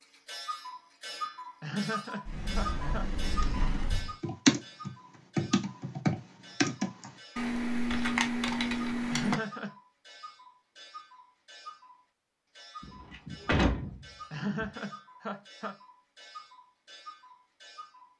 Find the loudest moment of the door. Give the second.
14 s.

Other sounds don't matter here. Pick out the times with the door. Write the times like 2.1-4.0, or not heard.
2.2-4.2, 12.8-14.7.